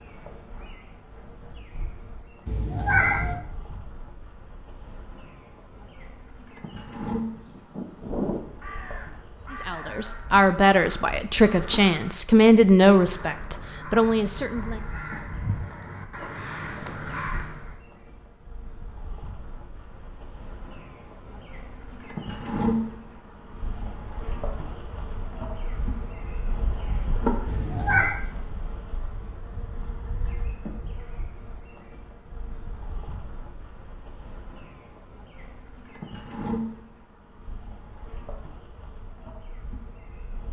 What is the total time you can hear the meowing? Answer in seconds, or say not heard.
2 s.